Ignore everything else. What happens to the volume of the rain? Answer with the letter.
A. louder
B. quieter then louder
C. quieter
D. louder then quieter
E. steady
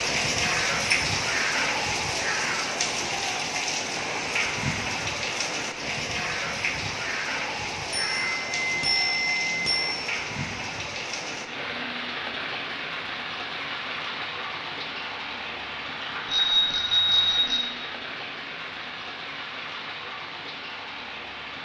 C.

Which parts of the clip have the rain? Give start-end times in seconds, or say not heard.
0.0-21.5.